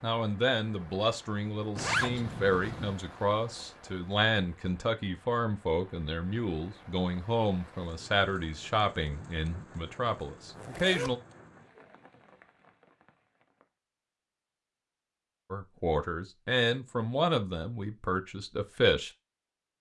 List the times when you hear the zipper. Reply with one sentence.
The zipper can be heard from 1.8 to 3.0 s and from 10.6 to 11.1 s.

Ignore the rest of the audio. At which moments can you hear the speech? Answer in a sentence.
The speech can be heard from 0.0 to 11.2 s and from 15.5 to 19.1 s.